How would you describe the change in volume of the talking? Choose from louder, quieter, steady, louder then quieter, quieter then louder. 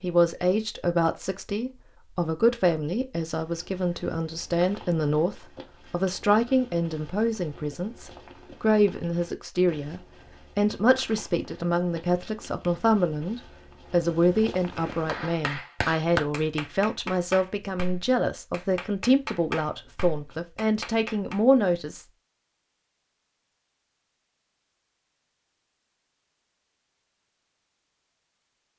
steady.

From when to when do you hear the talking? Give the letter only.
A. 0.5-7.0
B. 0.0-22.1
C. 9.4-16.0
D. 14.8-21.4
B.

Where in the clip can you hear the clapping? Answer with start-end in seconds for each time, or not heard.
14.8-21.4.